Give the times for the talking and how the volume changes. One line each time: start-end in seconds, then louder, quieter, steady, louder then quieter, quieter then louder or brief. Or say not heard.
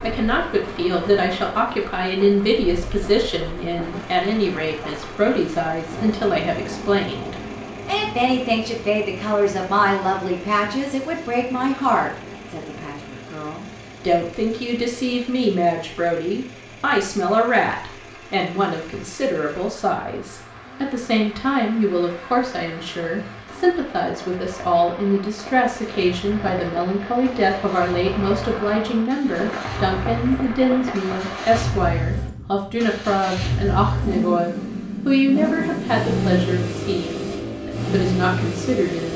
0.0-39.1 steady.